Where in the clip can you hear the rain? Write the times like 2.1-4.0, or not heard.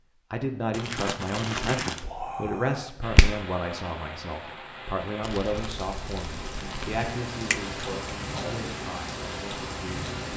3.0-10.3.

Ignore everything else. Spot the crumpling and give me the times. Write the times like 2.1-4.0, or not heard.
0.7-2.0, 5.2-7.0.